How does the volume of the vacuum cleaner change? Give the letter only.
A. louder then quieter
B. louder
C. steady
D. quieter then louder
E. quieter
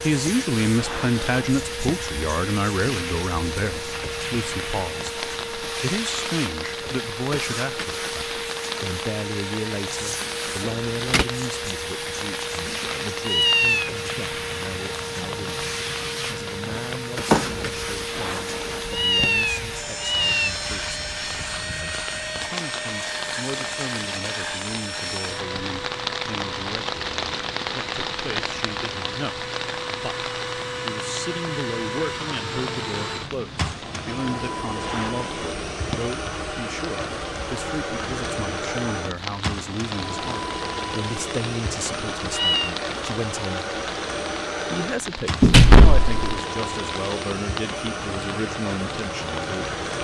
C.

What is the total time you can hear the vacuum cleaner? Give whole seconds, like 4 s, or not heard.
50 s.